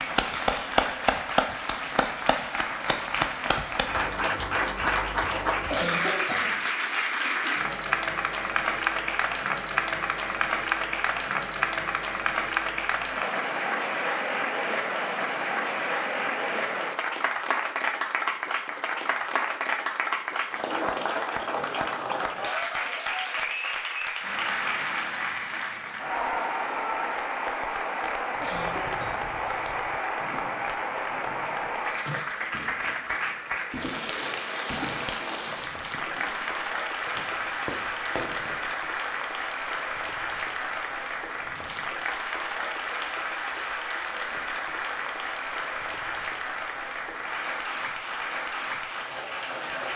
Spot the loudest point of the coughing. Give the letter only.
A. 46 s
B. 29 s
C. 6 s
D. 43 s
C.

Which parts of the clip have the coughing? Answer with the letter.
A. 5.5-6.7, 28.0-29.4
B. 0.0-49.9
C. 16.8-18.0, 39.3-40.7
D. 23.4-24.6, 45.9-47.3
A.